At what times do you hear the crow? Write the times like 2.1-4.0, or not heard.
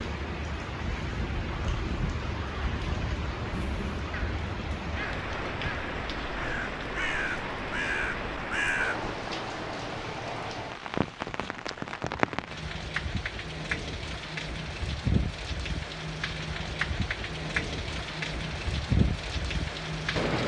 0.8-9.1.